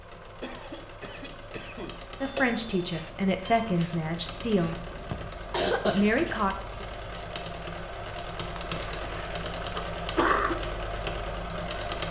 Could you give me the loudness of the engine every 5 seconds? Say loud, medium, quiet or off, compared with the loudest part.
medium, loud, loud.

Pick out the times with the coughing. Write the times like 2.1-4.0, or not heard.
0.4-2.5, 4.7-6.0, 8.6-10.6.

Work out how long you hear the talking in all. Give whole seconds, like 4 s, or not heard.
4 s.